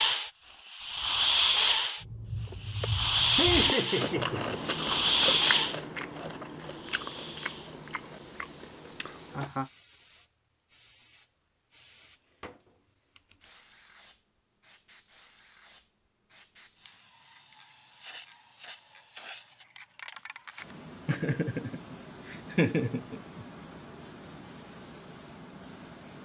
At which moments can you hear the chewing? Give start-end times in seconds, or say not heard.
2.0-9.5.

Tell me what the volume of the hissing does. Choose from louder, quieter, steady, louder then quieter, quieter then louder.
quieter then louder.